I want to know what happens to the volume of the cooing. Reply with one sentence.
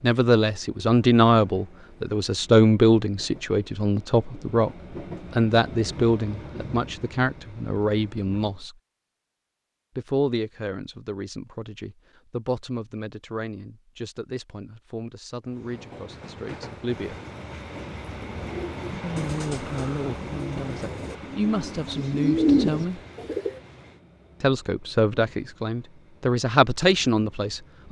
The volume of the cooing goes up.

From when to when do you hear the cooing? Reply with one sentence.
The cooing can be heard from 18.1 to 23.6 s.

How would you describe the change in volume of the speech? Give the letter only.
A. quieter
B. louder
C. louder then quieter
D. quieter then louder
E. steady
D.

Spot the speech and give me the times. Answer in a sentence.
The speech can be heard from 0.0 to 8.8 s, from 9.9 to 17.2 s, from 19.0 to 23.0 s and from 24.4 to 27.8 s.